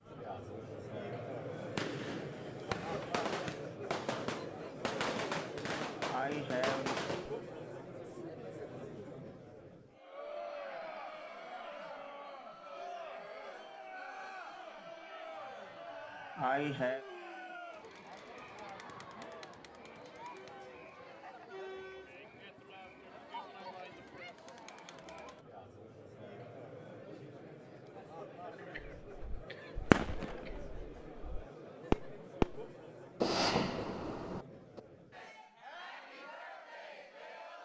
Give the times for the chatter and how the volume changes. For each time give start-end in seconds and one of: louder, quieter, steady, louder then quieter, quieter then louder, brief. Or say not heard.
0.0-37.5 quieter.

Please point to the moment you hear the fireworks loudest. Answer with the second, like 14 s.
30 s.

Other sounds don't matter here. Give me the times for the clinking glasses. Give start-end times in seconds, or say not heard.
not heard.